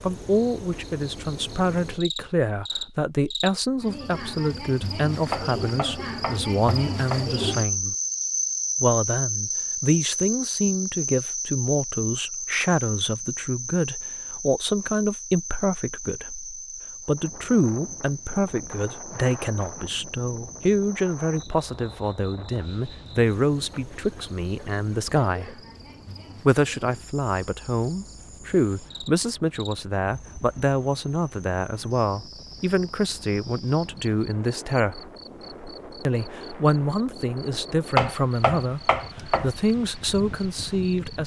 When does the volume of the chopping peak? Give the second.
38 s.